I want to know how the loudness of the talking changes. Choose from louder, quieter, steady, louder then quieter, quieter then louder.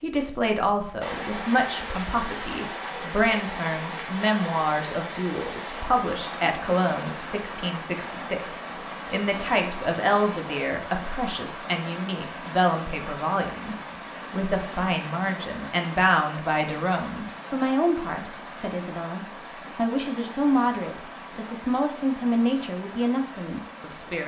steady.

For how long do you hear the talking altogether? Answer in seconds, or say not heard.
24 s.